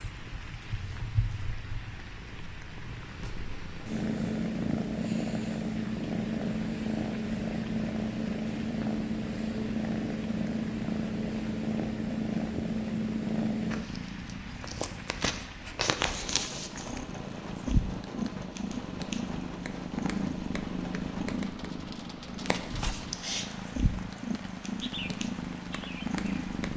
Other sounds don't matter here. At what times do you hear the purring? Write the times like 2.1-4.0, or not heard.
0.0-26.7.